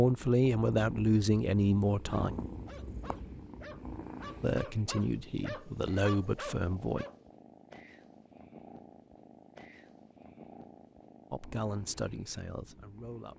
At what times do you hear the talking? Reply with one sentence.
You can hear the talking from 0.0 to 2.3 s, from 4.4 to 7.0 s and from 11.3 to 13.3 s.